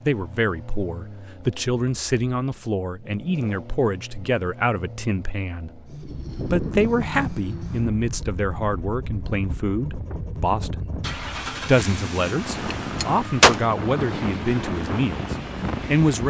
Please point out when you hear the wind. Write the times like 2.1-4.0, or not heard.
5.9-16.2.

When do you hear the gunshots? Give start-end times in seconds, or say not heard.
12.7-13.6.